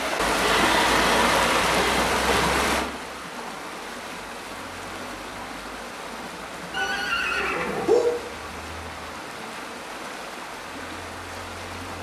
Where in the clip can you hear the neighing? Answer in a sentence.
The neighing can be heard from 0.4 to 2.5 s and from 6.7 to 8.2 s.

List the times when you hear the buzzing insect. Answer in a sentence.
The buzzing insect can't be heard in this clip.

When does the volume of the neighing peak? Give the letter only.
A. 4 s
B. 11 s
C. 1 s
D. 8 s
D.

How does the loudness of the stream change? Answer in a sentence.
The loudness of the stream goes down.